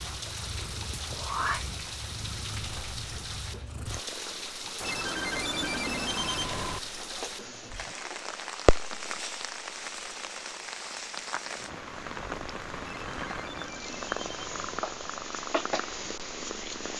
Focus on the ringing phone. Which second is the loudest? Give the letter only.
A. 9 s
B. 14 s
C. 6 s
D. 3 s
C.